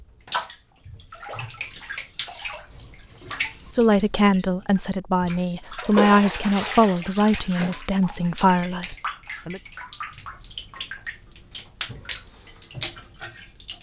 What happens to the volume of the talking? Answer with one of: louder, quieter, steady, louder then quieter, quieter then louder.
steady.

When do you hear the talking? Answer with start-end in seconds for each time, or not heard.
3.7-9.6.